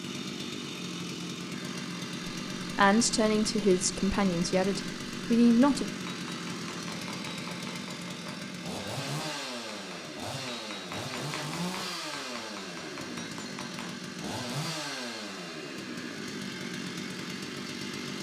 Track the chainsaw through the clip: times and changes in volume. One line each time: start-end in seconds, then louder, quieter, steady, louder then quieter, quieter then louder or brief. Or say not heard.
0.0-18.1 steady.